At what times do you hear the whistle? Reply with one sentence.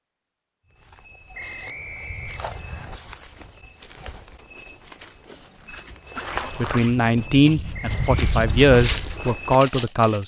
The whistle can be heard from 1.3 to 2.9 s and from 7.7 to 8.2 s.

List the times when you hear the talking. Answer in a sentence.
The talking can be heard from 6.5 to 10.2 s.